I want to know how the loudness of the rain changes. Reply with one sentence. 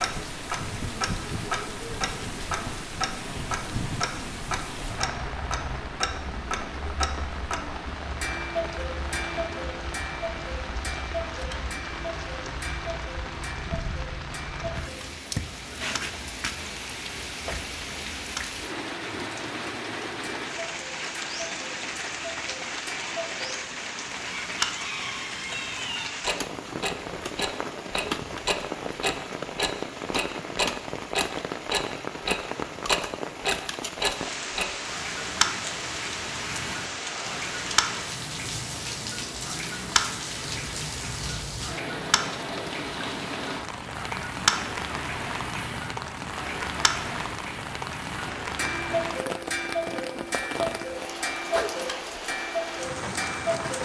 The loudness of the rain stays about the same.